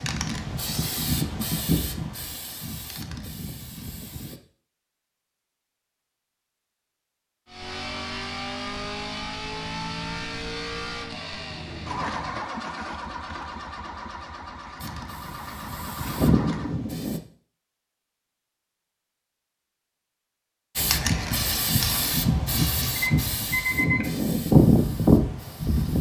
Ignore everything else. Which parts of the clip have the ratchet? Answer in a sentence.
The ratchet can't be heard in this clip.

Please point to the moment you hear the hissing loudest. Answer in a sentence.
The volume of the hissing peaks at 25 seconds.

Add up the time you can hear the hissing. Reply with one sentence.
You can hear the hissing for 12 seconds altogether.